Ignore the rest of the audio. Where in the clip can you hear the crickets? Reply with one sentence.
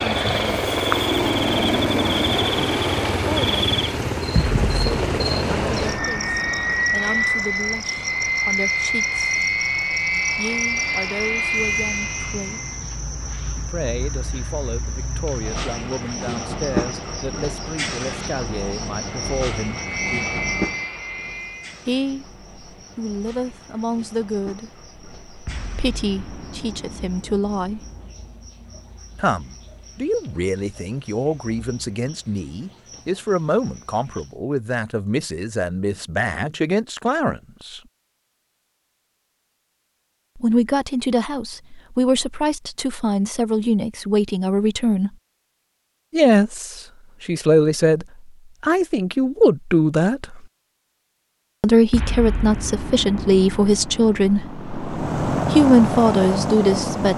You can hear the crickets from 0.0 to 34.4 s.